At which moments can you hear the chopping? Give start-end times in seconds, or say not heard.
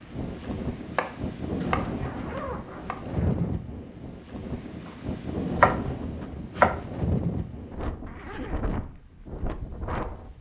0.9-3.0, 5.6-6.9.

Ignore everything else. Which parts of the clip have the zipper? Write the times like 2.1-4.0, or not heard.
1.8-3.5, 8.1-8.7.